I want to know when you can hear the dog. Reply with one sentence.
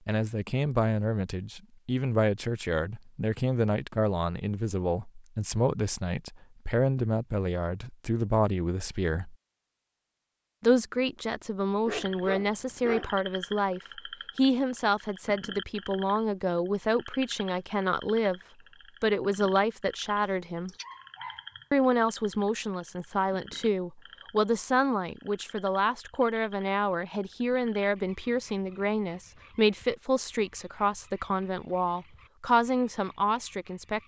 The dog can be heard from 11.8 to 13.2 s and from 20.6 to 21.6 s.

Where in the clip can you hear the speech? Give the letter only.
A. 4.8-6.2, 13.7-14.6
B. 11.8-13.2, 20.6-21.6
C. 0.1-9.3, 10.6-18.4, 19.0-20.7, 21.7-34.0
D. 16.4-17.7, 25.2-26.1
C.